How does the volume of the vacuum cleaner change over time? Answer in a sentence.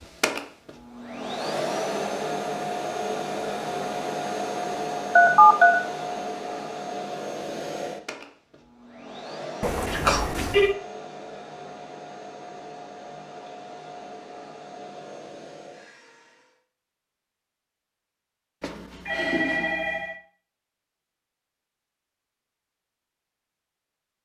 The volume of the vacuum cleaner goes down.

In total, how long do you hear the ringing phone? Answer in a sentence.
The ringing phone can be heard for 3 seconds in total.